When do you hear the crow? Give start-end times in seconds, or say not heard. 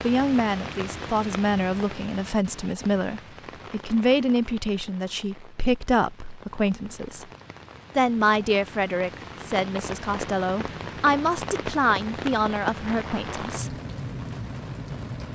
not heard.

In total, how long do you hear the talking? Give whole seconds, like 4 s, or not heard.
13 s.